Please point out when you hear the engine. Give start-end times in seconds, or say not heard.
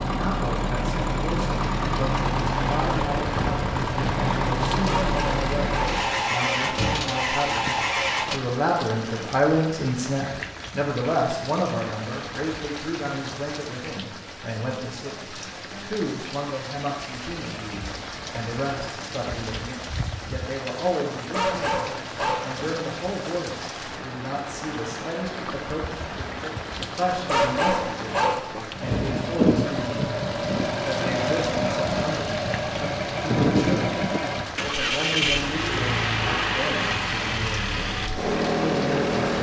0.0-8.4, 28.8-39.3.